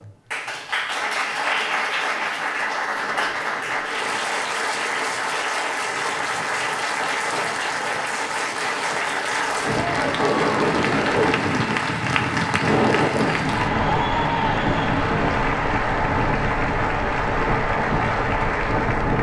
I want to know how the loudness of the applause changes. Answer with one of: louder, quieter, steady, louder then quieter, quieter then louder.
steady.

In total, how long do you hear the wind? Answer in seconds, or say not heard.
16 s.